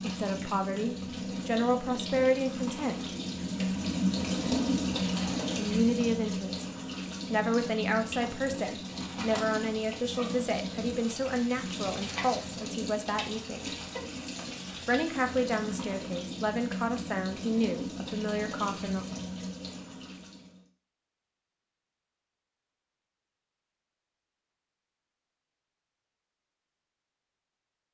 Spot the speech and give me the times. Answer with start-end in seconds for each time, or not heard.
0.0-3.0, 5.5-6.7, 7.3-13.7, 14.8-19.1.